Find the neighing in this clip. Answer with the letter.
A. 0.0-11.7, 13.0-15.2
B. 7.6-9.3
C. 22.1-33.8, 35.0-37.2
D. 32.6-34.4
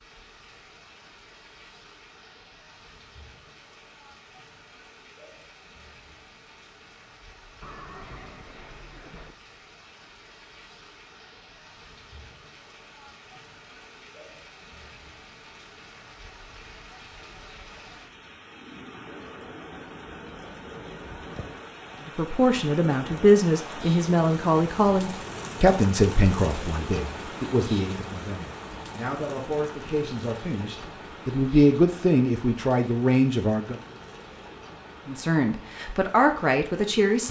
B.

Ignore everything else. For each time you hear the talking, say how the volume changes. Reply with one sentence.
The talking can be heard from 22.1 to 33.8 s, getting quieter then louder; and briefly from 35.0 to 37.2 s.